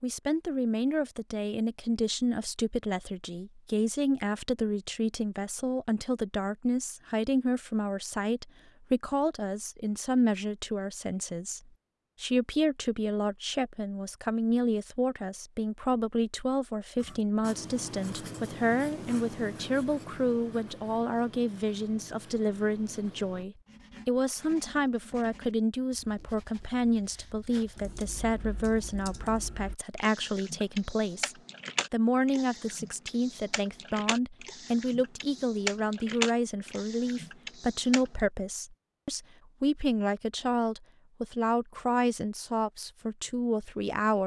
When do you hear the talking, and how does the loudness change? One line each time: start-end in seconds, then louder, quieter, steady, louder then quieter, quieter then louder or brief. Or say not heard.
0.0-11.6 steady
12.2-44.2 steady.